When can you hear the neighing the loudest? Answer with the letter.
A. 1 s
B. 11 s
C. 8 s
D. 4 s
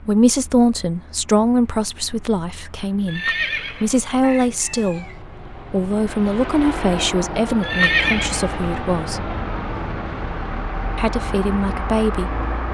C.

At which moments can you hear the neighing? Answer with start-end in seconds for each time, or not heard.
3.0-4.1, 7.6-8.6.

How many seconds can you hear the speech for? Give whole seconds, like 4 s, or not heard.
11 s.